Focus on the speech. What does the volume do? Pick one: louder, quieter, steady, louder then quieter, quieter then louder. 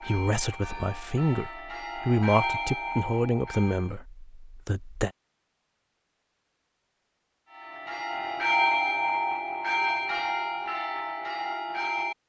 louder then quieter.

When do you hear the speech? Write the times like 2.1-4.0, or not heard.
0.0-5.1.